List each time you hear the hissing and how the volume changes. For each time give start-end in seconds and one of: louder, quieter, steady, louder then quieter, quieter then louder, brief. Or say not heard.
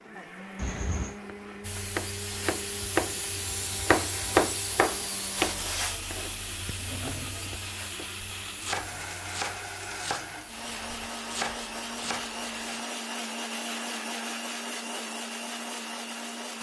1.6-11.1 quieter.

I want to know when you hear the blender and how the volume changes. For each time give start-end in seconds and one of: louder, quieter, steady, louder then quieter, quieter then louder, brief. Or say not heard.
0.0-16.5 louder.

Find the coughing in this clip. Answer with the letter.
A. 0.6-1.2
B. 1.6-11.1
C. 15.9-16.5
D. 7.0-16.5
A.